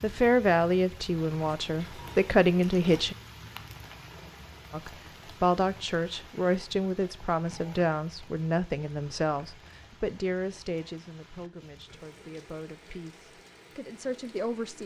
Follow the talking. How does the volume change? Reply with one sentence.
The volume of the talking goes down.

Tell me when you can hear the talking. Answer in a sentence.
You can hear the talking from 0.0 to 3.1 s and from 4.7 to 14.8 s.